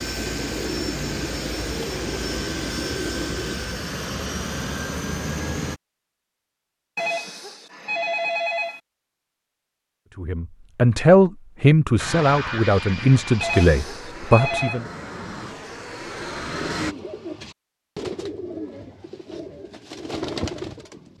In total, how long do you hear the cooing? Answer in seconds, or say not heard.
8 s.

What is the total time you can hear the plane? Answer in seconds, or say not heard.
11 s.